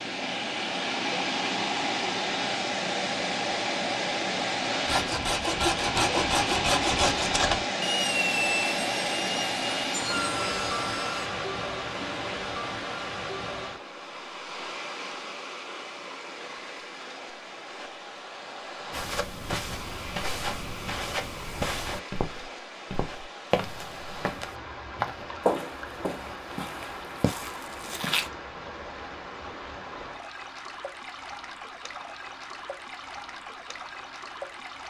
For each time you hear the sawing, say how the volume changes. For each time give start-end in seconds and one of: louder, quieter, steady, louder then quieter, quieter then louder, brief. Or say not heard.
4.8-11.3 quieter.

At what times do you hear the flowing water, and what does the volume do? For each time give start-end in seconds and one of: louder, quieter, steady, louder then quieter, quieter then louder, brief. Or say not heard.
0.0-34.8 quieter.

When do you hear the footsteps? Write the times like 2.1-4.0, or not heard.
18.9-28.3.